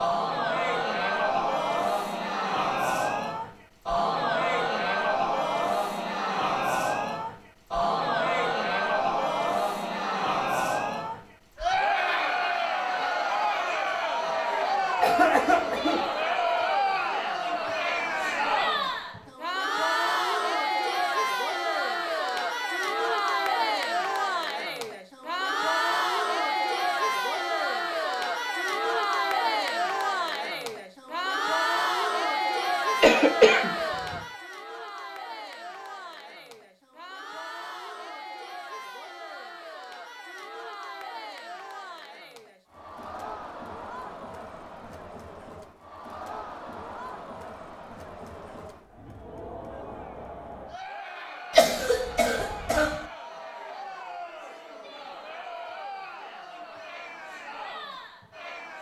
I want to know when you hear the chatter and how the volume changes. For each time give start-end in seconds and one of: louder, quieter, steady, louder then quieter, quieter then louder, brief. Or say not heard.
0.0-58.7 quieter.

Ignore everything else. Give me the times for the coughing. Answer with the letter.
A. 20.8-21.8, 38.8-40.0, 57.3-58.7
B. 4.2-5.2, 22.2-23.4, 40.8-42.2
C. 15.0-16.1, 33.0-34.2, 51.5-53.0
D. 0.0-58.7
C.